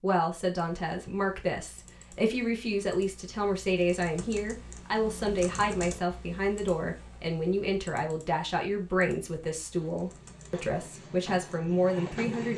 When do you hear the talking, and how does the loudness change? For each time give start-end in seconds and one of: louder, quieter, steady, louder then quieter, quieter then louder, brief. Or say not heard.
0.0-12.5 steady.